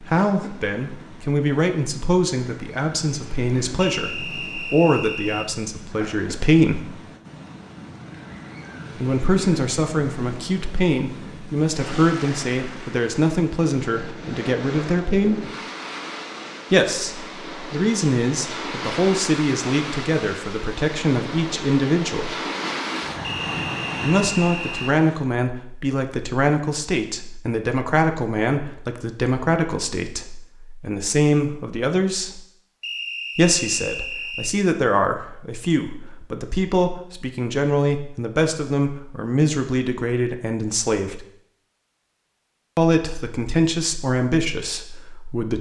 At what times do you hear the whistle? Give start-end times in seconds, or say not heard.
3.8-5.5, 23.2-24.9, 32.8-34.5.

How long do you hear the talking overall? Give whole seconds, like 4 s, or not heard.
38 s.